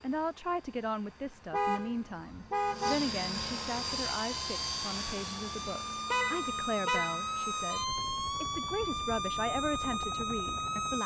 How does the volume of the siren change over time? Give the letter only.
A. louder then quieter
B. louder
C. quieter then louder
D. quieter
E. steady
B.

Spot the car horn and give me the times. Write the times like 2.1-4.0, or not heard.
1.5-3.0, 6.1-7.3.